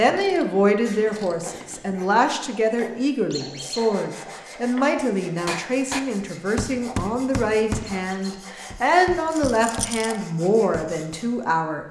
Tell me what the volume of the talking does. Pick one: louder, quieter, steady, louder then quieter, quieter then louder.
steady.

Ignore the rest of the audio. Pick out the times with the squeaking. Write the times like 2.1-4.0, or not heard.
3.3-3.8, 7.8-8.3.